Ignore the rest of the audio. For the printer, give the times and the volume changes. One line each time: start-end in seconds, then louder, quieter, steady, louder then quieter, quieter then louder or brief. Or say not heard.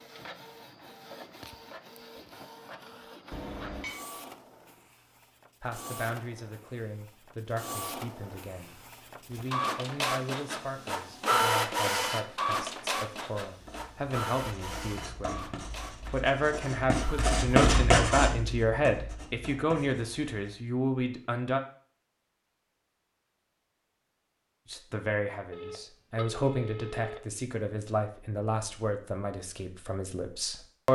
0.0-17.4 louder then quieter.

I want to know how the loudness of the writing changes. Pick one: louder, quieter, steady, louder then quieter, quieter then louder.
louder then quieter.